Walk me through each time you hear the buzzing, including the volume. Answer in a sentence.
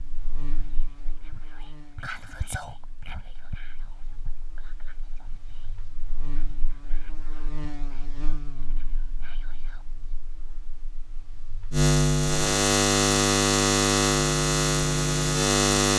The buzzing can be heard from 0.0 to 15.9 s, getting louder.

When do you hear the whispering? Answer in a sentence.
The whispering can be heard from 0.6 to 10.2 s.